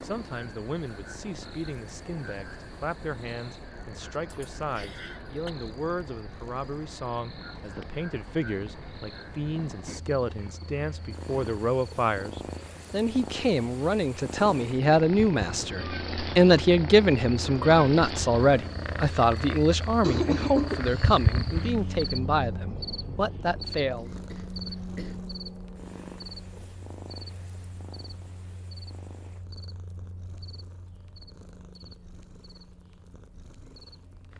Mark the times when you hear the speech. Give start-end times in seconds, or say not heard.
0.0-24.1.